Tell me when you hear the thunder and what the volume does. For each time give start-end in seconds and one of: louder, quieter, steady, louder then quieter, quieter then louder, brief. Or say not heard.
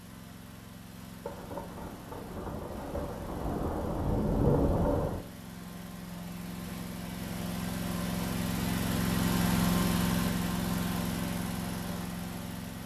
1.2-5.2 louder.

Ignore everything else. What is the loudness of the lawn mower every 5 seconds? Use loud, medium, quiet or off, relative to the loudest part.
quiet, loud, loud.